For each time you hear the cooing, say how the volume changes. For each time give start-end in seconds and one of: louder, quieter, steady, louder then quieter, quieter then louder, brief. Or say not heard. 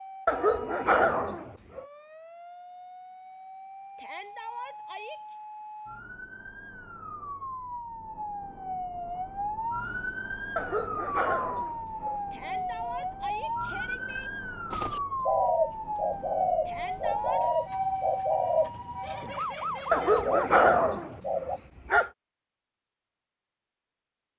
14.7-21.6 quieter then louder.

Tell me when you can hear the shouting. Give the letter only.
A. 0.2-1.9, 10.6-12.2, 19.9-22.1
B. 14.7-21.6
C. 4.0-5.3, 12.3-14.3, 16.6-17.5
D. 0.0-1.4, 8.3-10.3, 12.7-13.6
C.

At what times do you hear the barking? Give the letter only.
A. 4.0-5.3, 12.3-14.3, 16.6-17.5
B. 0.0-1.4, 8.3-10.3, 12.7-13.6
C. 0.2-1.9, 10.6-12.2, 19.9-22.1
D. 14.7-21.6
C.